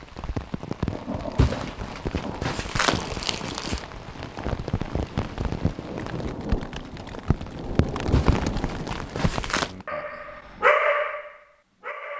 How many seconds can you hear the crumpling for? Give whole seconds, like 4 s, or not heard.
4 s.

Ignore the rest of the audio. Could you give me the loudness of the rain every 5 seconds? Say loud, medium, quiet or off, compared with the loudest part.
loud, loud, off.